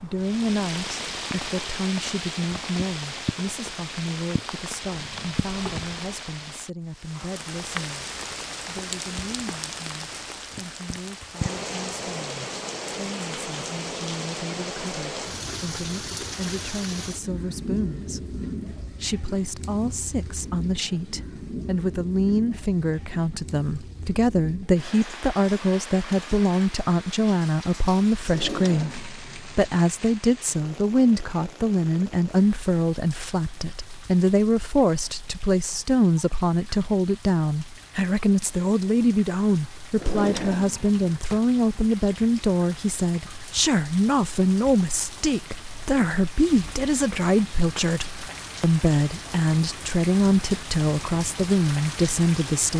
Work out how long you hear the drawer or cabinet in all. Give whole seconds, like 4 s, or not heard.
4 s.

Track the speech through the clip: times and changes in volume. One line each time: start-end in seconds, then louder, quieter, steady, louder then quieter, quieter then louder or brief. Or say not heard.
0.0-8.1 quieter
8.7-52.7 louder.